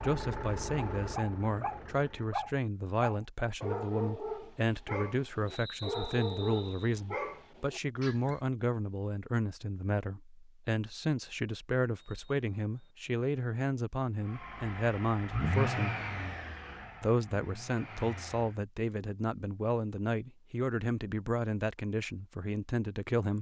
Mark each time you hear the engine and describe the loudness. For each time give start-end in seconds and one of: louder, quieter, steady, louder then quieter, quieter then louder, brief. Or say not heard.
0.0-2.4 brief
14.2-18.6 louder then quieter.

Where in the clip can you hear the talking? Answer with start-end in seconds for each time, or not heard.
0.0-15.9, 17.0-23.3.